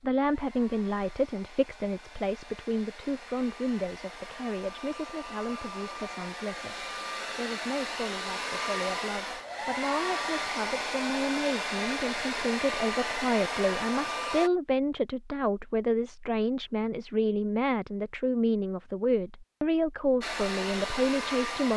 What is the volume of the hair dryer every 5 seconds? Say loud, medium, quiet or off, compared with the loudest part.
quiet, loud, loud, off, loud.